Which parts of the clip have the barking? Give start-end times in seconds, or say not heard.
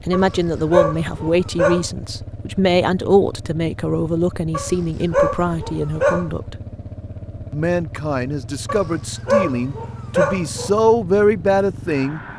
0.1-1.9, 4.5-6.3, 8.7-10.7.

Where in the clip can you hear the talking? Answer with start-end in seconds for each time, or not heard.
0.1-6.5, 7.5-12.2.